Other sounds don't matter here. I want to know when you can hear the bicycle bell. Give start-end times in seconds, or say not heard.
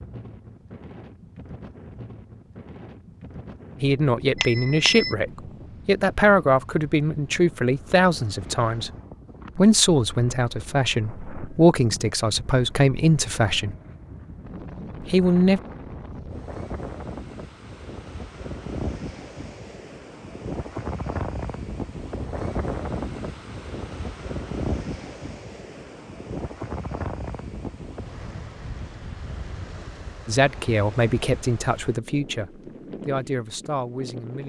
4.3-5.2.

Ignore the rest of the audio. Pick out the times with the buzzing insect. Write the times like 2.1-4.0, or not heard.
not heard.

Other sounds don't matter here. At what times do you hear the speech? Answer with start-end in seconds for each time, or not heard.
3.8-8.9, 9.6-13.8, 15.1-15.6, 30.2-34.4.